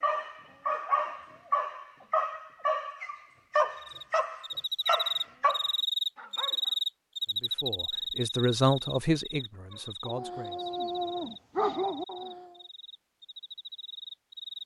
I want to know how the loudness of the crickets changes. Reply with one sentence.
The volume of the crickets goes down.